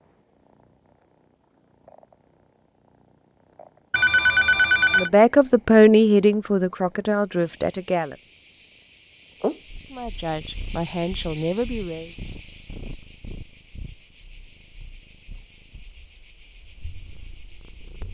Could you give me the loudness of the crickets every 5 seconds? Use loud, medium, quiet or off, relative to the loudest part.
off, medium, loud, medium.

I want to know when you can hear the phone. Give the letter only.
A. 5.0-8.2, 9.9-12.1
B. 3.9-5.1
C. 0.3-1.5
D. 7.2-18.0
B.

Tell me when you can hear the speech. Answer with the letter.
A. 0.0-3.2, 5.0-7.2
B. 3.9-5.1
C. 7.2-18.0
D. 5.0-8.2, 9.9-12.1
D.